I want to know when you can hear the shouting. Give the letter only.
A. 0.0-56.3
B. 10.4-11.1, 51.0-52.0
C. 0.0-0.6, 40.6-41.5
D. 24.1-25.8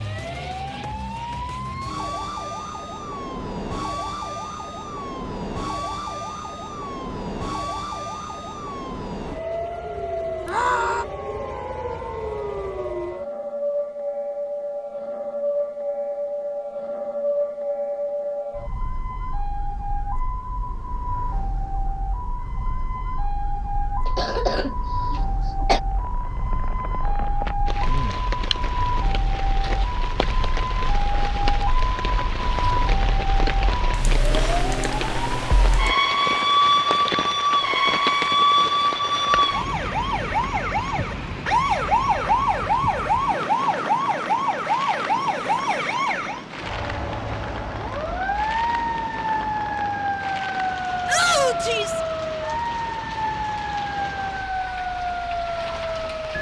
B.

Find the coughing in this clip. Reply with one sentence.
The coughing can be heard from 24.1 to 25.8 s.